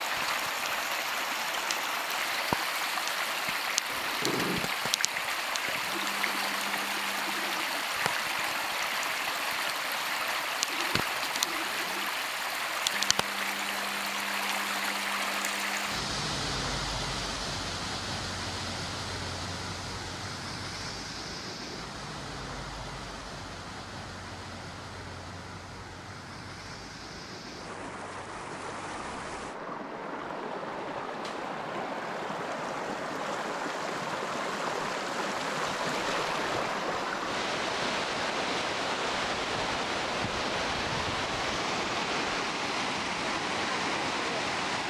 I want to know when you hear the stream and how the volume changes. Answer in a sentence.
You can hear the stream from 0.0 to 44.8 s, getting quieter then louder.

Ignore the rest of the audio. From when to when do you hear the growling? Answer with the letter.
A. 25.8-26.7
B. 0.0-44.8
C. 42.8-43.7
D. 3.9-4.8
D.